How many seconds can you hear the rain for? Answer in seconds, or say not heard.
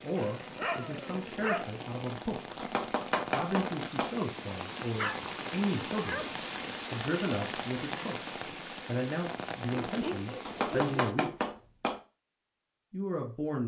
11 s.